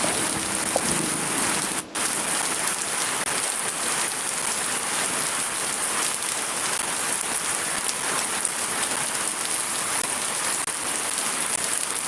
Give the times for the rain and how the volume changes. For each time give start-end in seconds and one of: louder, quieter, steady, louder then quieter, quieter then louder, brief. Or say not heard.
0.0-12.0 steady.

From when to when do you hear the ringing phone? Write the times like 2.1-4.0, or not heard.
not heard.